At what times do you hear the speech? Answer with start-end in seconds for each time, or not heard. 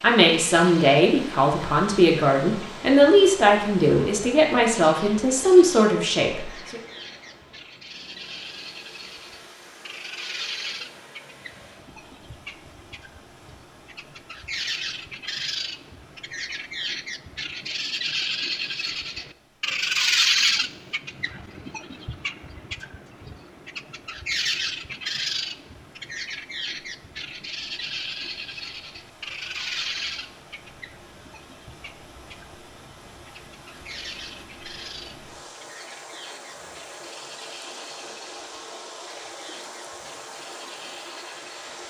0.0-6.8.